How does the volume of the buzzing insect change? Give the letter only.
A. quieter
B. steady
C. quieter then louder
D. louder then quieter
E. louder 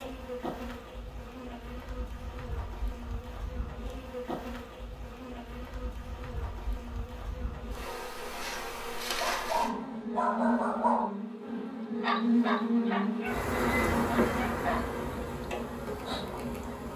E.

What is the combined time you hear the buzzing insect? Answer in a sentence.
The buzzing insect can be heard for 17 seconds in total.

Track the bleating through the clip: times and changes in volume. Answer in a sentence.
You can't hear the bleating here.